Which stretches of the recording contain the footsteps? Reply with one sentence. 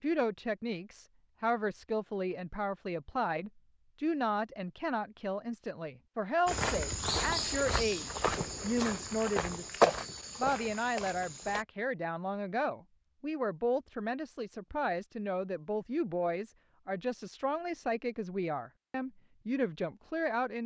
The footsteps can be heard from 6.5 to 11.7 s.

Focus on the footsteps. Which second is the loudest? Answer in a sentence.
The volume of the footsteps peaks at 10 seconds.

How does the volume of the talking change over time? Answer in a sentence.
The volume of the talking stays about the same.